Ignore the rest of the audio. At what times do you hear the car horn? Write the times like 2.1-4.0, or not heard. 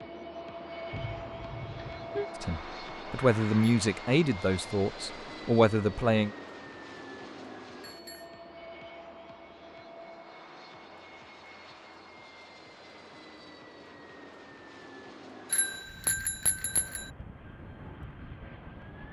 0.9-2.3.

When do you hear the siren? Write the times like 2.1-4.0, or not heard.
not heard.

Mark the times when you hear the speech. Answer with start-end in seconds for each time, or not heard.
2.4-6.3.